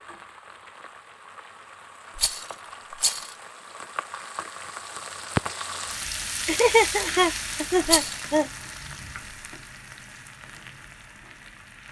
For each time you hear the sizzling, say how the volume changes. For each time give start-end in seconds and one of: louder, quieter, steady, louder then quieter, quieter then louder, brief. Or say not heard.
0.0-11.8 louder then quieter.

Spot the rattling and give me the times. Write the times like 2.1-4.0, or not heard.
2.1-3.4, 7.8-8.2.